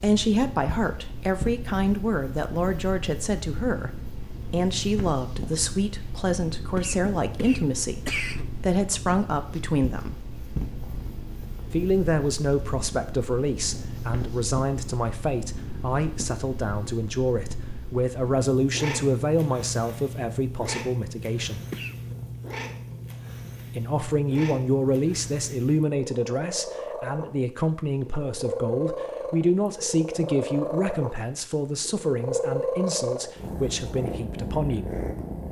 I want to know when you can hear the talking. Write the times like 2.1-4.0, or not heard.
0.0-10.2, 11.7-21.6, 23.8-34.9.